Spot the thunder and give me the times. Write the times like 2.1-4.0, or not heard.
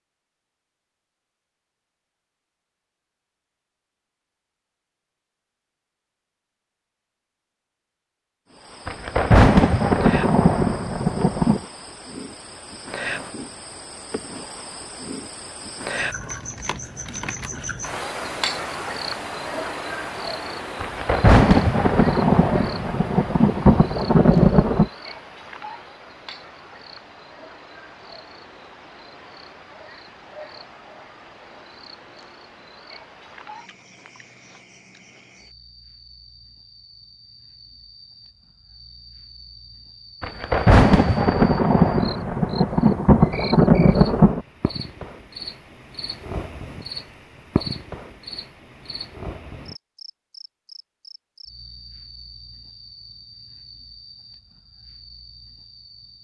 8.8-11.6, 20.8-24.9, 40.2-44.4.